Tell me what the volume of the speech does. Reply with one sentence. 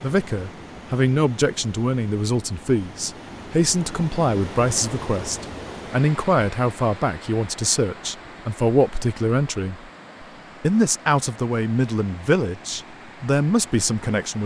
The loudness of the speech stays about the same.